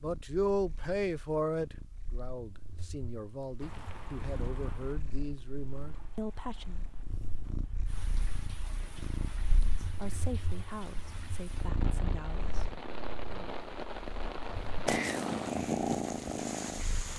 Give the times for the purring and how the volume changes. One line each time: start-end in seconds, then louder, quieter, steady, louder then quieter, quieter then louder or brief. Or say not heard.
0.0-17.1 louder.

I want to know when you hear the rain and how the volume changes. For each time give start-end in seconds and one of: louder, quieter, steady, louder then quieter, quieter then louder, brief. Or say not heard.
3.6-17.1 louder.